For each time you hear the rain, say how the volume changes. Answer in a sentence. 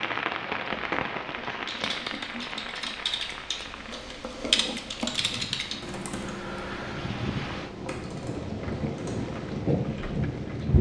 You can hear the rain from 0.0 to 10.7 s, getting quieter then louder.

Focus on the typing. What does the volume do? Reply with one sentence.
The loudness of the typing goes up, then down.